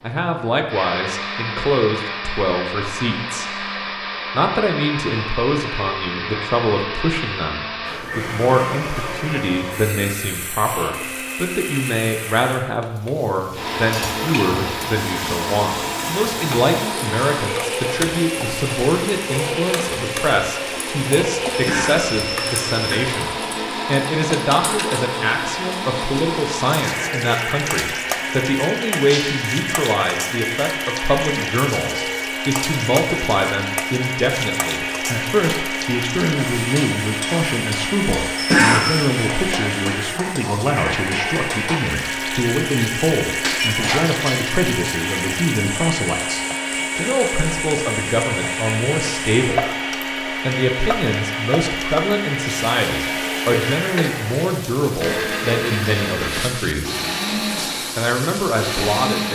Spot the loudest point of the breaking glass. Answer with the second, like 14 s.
44 s.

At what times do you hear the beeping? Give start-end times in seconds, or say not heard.
not heard.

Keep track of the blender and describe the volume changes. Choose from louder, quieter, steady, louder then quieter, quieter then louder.
steady.